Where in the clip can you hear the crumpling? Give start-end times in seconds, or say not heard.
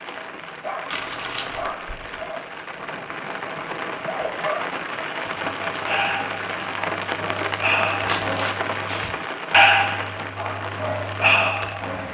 0.9-1.7, 7.0-8.8.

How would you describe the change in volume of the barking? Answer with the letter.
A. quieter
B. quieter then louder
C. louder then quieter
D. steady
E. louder
E.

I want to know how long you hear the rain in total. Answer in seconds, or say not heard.
12 s.